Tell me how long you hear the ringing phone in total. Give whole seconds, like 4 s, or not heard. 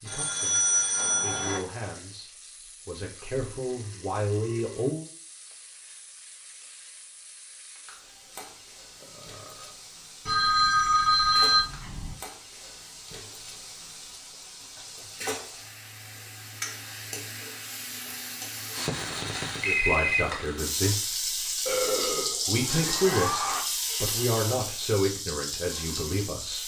5 s.